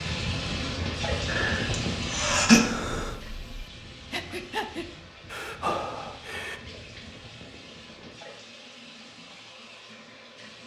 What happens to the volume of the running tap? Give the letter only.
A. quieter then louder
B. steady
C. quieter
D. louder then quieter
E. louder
C.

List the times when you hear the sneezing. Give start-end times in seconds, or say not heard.
1.7-2.6.